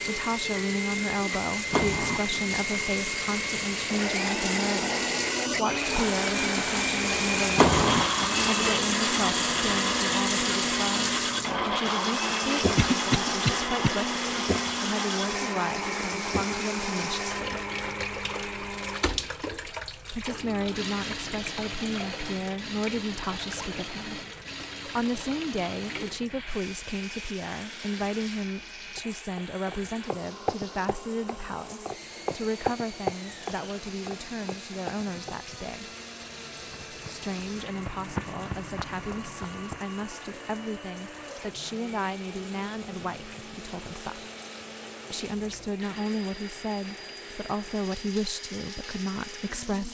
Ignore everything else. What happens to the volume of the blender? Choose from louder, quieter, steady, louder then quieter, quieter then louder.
quieter.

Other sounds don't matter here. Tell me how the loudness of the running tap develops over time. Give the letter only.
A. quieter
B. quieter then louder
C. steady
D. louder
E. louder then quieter
A.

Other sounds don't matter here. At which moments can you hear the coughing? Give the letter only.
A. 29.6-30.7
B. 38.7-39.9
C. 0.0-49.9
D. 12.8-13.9
D.